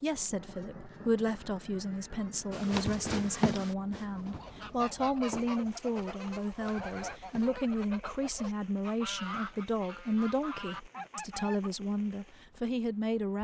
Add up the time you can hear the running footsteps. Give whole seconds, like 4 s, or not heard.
5 s.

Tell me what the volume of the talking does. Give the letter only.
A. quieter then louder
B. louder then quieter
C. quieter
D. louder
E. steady
E.